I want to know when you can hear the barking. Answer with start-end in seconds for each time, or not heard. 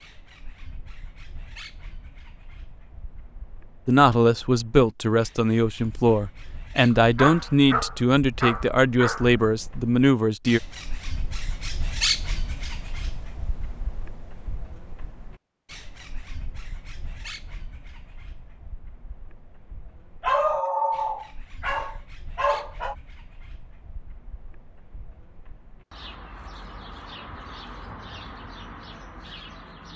6.9-9.3, 20.2-22.9.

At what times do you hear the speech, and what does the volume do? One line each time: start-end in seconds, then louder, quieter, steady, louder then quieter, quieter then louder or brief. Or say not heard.
3.9-10.6 steady.